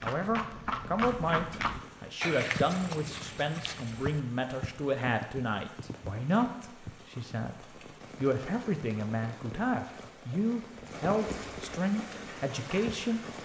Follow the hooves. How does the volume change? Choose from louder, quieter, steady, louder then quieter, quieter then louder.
quieter.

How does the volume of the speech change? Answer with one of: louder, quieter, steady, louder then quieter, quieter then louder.
steady.